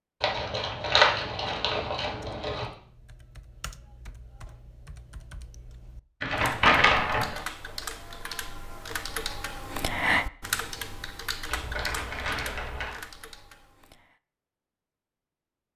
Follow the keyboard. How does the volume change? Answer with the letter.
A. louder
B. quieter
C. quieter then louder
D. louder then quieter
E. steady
D.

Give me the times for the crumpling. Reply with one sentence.
You can hear the crumpling from 0.2 to 2.6 s, from 6.2 to 7.4 s and from 11.4 to 13.0 s.